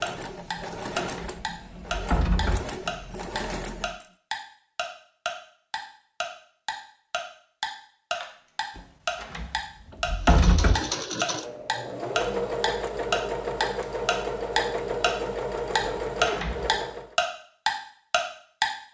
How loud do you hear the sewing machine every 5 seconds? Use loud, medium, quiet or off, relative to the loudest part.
medium, off, loud, loud.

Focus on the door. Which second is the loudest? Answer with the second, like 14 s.
10 s.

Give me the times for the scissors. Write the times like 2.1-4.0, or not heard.
8.2-8.6.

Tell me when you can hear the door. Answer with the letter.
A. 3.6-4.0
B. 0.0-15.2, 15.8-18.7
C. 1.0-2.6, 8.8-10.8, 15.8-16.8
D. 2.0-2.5
C.